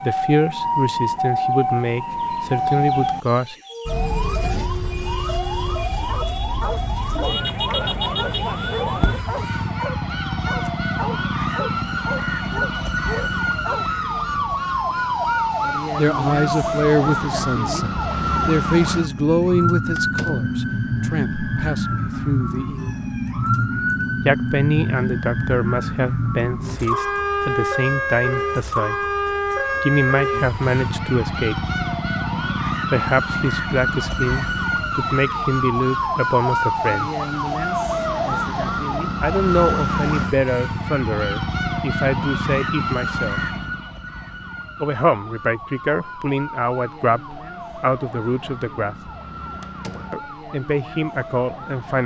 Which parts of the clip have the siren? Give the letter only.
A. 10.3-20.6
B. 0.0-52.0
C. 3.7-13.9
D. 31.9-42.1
B.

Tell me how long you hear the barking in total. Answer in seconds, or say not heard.
10 s.